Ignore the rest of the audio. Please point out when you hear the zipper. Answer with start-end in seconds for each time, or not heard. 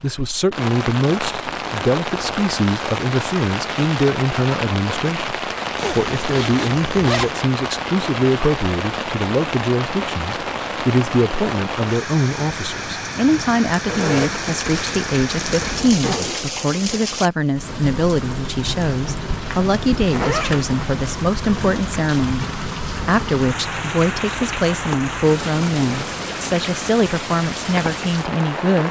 5.8-7.3, 13.8-16.4, 20.1-20.7.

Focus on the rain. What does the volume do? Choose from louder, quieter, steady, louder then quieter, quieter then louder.
steady.